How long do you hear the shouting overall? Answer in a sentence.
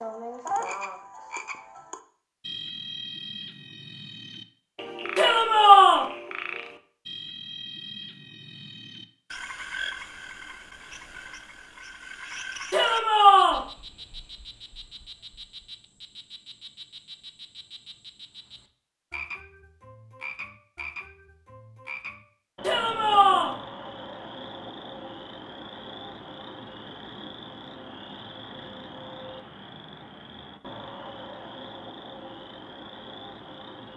The shouting can be heard for 3 seconds in total.